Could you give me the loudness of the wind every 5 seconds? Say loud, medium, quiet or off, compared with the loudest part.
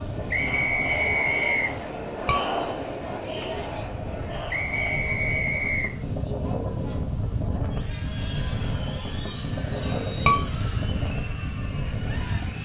medium, loud, loud.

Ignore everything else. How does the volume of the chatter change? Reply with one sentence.
The loudness of the chatter goes down.